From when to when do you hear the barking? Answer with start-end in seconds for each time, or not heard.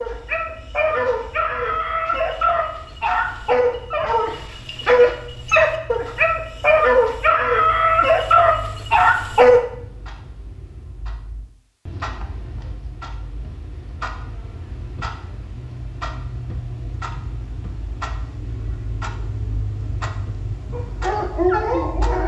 0.0-9.7, 20.7-22.2.